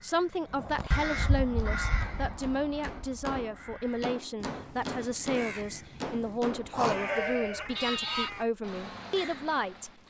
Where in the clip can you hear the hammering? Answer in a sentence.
You can hear the hammering from 1.6 to 7.2 s.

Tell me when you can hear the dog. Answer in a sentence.
The dog can't be heard in this clip.